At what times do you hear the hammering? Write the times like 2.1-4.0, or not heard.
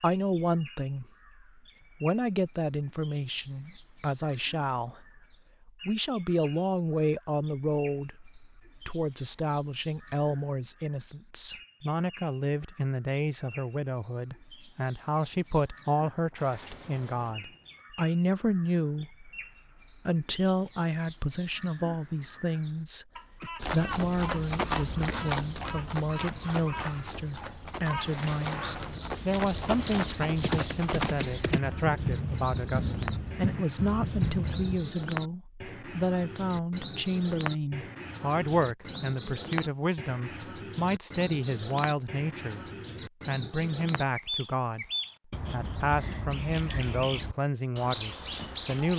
not heard.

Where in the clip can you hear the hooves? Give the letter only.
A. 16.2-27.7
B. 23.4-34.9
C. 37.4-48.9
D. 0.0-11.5
B.